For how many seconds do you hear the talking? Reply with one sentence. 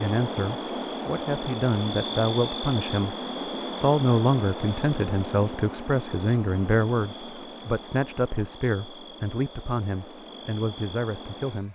The talking can be heard for 11 seconds in total.